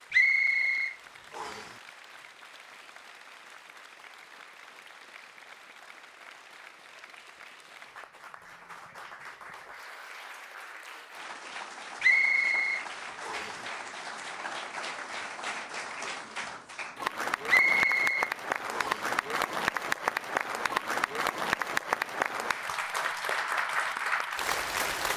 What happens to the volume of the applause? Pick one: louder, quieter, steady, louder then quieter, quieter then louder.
louder.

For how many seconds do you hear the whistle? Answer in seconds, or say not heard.
5 s.